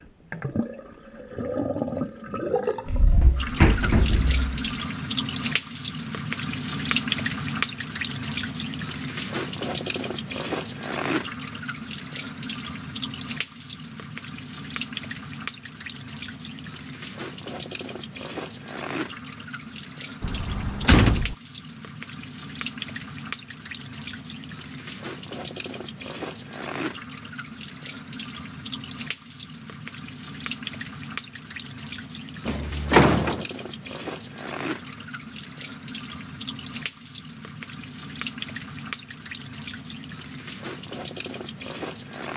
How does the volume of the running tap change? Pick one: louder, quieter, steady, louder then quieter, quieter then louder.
quieter.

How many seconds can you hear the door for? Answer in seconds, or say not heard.
4 s.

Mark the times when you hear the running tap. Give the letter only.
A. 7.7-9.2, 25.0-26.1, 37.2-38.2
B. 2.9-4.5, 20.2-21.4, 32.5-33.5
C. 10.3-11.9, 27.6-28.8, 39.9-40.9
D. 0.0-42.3
D.